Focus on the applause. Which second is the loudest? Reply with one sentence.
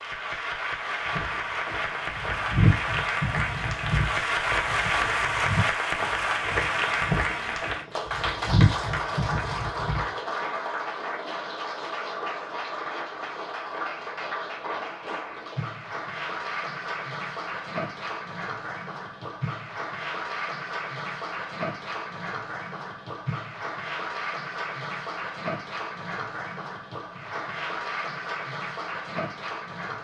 The loudest moment of the applause is at 5 seconds.